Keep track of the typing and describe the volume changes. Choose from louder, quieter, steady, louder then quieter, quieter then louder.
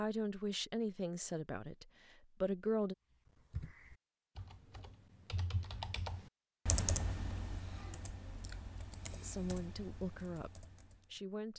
louder then quieter.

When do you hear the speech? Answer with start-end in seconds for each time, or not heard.
0.0-3.0, 9.2-11.5.